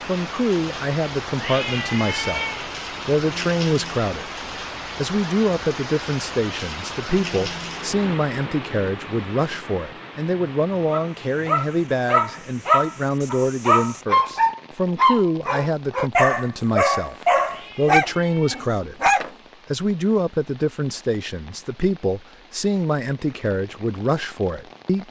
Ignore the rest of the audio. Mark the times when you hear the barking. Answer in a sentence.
You can hear the barking from 10.8 to 19.3 s.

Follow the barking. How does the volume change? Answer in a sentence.
The loudness of the barking stays about the same.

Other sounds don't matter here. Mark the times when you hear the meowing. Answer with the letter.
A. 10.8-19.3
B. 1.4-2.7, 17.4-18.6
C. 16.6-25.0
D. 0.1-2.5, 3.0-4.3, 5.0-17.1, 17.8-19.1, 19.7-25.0
B.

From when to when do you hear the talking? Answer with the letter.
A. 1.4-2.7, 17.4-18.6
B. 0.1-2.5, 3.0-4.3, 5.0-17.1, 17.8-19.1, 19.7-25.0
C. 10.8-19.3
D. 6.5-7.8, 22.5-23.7
B.